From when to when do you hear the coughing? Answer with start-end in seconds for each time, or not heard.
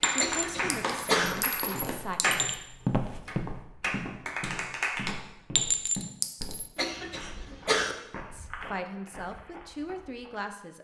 0.1-1.4, 6.8-8.0.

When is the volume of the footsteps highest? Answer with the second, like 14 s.
3 s.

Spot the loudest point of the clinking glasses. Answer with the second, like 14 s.
6 s.